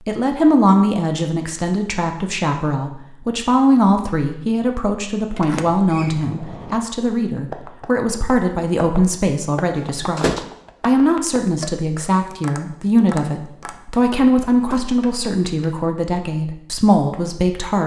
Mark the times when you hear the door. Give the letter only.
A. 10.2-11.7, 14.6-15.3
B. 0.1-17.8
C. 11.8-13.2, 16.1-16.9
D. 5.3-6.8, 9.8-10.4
D.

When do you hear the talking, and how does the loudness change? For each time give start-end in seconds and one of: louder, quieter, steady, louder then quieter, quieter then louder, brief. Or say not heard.
0.1-17.8 steady.